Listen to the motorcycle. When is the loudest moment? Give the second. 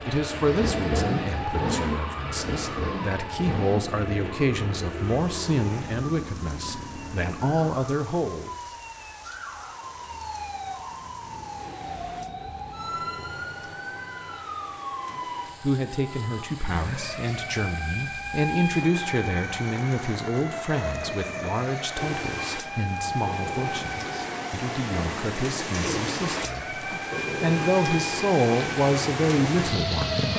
1 s.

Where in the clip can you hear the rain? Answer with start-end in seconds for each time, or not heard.
4.8-30.3.